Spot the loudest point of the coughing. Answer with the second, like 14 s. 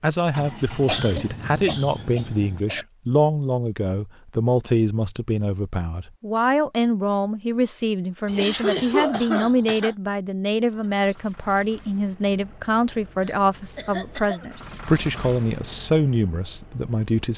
9 s.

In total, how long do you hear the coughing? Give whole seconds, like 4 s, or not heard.
5 s.